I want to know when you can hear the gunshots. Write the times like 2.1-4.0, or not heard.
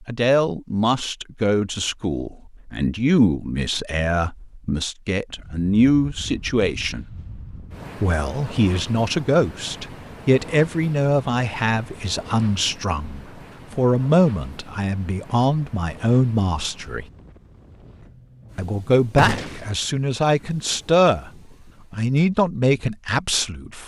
19.1-19.7.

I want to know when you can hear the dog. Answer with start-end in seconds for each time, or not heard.
not heard.